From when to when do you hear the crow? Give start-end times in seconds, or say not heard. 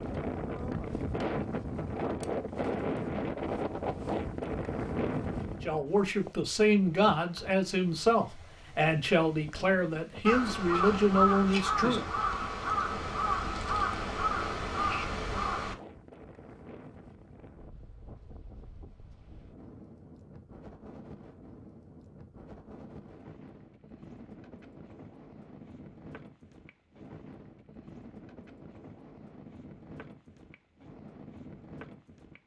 10.2-15.8.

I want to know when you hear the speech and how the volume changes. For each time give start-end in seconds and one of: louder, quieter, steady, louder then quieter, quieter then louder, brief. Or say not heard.
5.6-12.1 steady.